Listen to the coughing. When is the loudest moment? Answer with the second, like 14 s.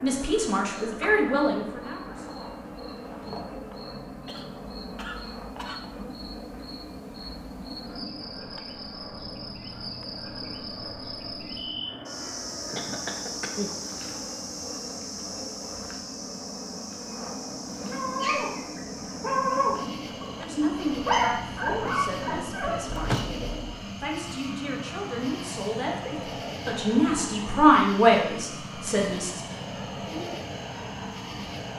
23 s.